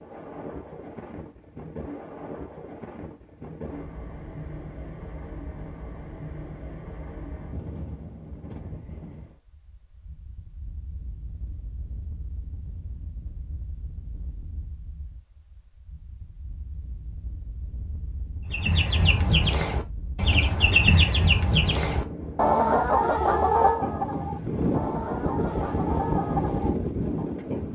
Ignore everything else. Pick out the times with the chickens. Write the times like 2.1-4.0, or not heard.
18.5-27.3.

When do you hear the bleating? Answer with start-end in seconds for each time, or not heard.
not heard.